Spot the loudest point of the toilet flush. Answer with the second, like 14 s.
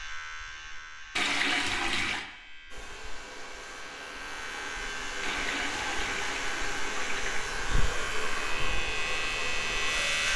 2 s.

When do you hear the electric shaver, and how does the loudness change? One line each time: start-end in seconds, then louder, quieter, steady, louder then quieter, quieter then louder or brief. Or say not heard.
0.0-10.3 louder.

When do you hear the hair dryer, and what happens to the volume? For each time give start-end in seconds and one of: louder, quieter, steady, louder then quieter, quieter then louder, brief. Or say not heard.
2.7-10.3 louder.